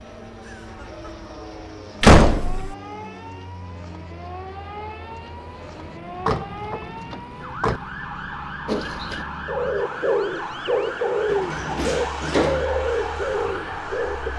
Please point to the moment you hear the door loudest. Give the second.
2 s.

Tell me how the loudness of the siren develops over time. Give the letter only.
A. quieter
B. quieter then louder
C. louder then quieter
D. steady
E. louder
E.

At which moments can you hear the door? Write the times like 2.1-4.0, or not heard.
2.0-2.8, 6.2-7.8, 11.3-12.7.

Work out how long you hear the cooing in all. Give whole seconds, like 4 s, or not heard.
6 s.